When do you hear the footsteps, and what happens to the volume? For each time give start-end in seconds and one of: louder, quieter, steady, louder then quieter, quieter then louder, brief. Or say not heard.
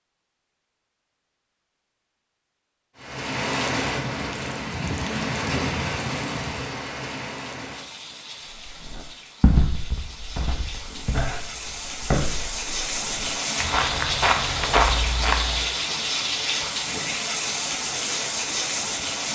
8.7-15.7 quieter then louder.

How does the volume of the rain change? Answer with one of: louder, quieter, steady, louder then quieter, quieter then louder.
quieter then louder.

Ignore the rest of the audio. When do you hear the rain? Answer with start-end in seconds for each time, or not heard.
3.0-19.3.